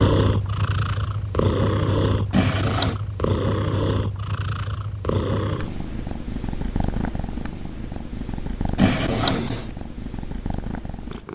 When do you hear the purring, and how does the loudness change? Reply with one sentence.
You can hear the purring from 0.0 to 11.2 s, getting quieter.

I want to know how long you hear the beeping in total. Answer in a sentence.
You can hear the beeping for 2 seconds altogether.